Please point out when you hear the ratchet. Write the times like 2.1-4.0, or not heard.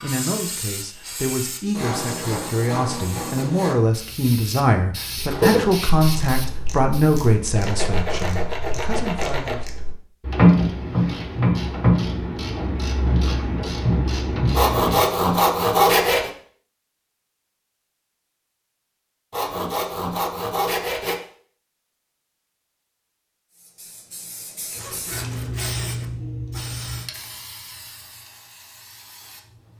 5.3-15.2.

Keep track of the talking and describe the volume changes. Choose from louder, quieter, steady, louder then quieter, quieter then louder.
louder then quieter.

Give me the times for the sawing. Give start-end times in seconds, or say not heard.
1.8-3.8, 7.5-9.6, 14.5-16.3, 19.3-21.2, 24.8-26.1.